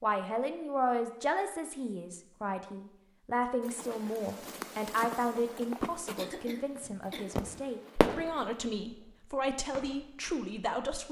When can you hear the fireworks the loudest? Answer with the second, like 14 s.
8 s.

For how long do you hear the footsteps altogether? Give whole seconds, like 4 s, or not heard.
5 s.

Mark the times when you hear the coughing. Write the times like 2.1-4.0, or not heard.
6.2-7.4.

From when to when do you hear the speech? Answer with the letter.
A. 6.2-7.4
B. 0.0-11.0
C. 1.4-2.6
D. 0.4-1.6
B.